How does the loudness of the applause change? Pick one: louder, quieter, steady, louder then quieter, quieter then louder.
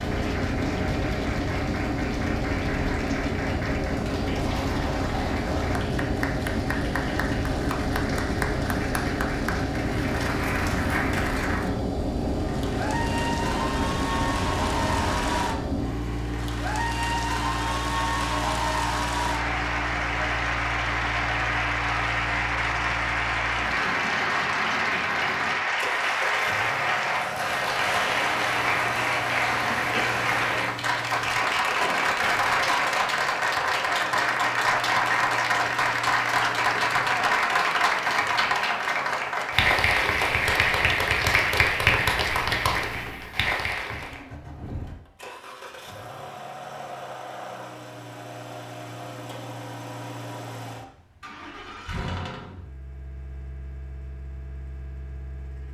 louder.